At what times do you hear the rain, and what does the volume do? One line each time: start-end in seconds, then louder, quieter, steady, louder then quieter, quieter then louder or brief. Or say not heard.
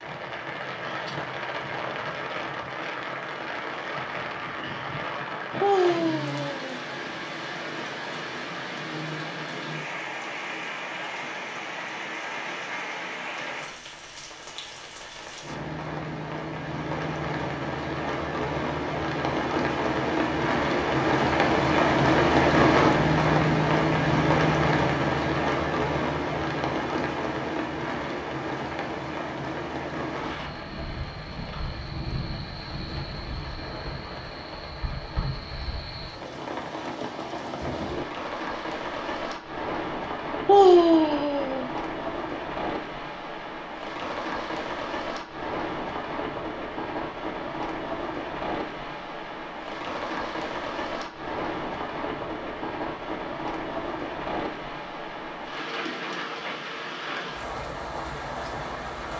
0.0-59.1 louder then quieter.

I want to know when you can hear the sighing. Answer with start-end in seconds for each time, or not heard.
5.6-6.8, 40.5-41.6.